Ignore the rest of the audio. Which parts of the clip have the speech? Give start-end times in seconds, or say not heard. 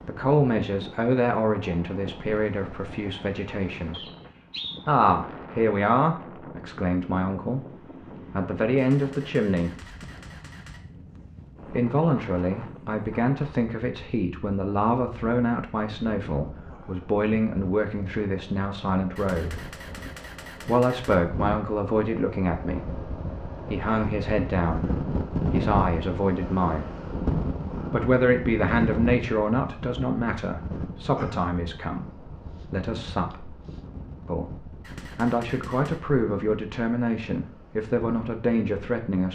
0.0-4.0, 4.8-9.8, 11.7-19.6, 20.6-26.9, 27.9-33.5, 34.2-39.3.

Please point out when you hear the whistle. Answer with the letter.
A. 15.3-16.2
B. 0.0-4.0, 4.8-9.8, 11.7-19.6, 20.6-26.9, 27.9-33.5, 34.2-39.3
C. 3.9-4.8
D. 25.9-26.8
C.